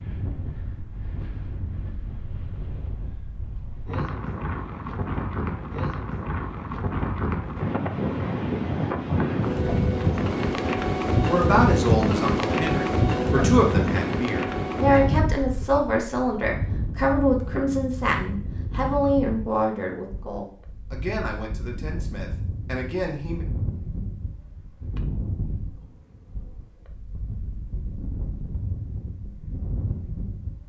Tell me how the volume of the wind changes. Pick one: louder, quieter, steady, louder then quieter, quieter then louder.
louder then quieter.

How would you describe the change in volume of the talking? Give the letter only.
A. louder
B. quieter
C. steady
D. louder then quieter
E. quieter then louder
B.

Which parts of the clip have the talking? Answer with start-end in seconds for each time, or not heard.
11.2-23.4.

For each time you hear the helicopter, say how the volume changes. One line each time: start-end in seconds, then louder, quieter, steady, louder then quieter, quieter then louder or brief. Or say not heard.
not heard.